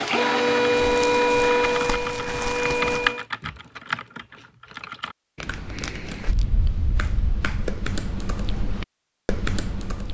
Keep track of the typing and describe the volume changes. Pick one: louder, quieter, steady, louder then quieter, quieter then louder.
quieter then louder.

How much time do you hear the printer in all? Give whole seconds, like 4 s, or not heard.
3 s.